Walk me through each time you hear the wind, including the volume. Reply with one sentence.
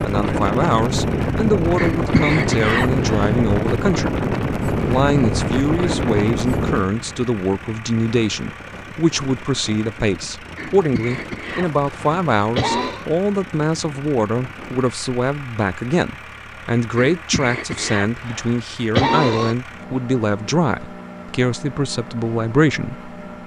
You can hear the wind from 0.0 to 14.8 s, getting quieter.